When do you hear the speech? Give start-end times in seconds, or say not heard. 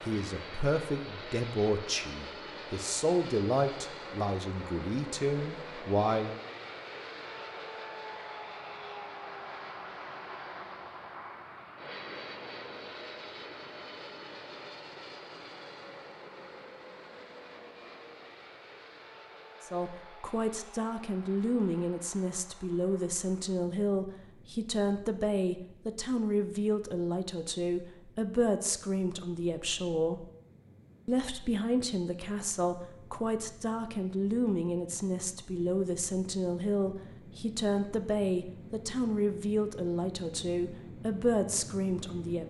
0.0-6.4, 19.6-30.3, 31.1-42.4.